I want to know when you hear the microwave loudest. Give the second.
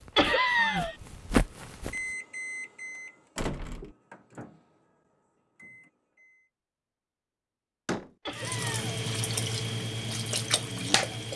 2 s.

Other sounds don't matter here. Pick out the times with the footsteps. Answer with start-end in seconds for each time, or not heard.
0.0-2.1.